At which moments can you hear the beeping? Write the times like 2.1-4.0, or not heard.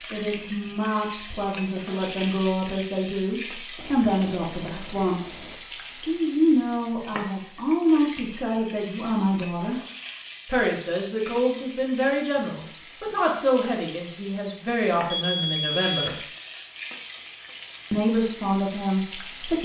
3.8-5.5, 15.1-16.1.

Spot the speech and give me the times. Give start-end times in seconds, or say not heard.
0.1-9.8, 10.4-16.2, 17.9-19.6.